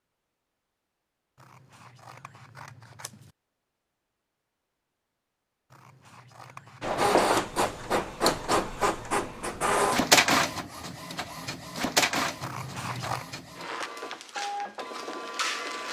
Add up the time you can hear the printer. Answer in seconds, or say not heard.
9 s.